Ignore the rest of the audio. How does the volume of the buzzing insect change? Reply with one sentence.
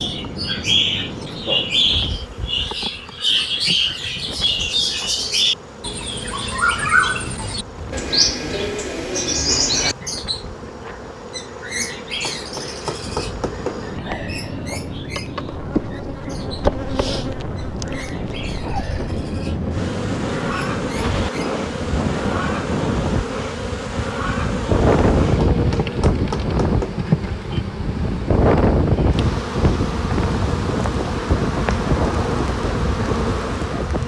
The volume of the buzzing insect goes up.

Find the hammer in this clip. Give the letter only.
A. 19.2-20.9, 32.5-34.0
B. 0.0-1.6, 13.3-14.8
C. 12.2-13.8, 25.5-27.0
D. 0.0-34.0
C.